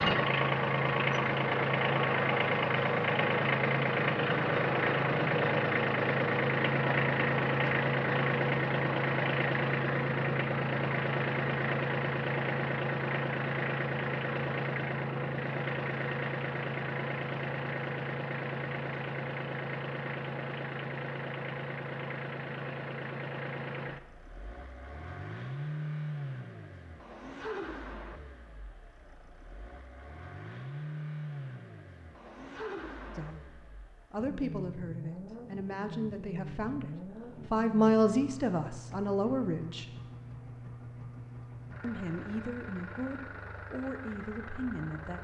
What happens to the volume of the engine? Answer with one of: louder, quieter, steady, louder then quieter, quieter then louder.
quieter.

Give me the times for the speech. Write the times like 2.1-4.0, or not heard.
33.1-36.9, 37.5-40.0, 41.8-45.1.